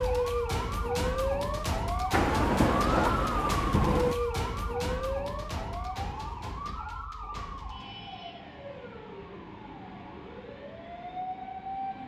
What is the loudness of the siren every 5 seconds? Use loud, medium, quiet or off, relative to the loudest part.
loud, medium, medium.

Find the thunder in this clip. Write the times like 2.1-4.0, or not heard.
2.1-4.2.